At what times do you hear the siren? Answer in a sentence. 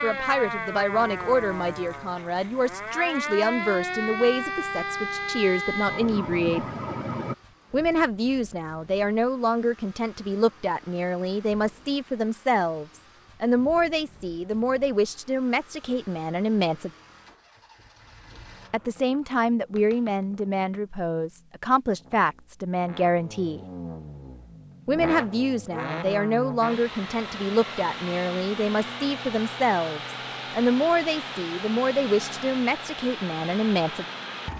You can hear the siren from 0.0 to 7.3 s.